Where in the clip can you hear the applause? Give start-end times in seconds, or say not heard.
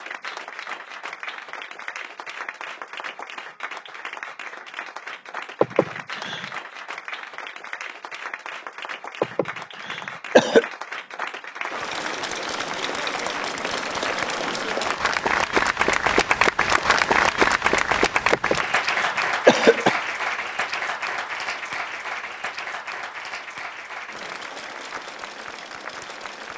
0.0-26.5.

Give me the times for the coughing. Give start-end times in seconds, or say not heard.
5.6-6.5, 9.2-10.7, 18.3-20.0.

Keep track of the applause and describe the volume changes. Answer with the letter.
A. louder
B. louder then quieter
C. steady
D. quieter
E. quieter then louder
B.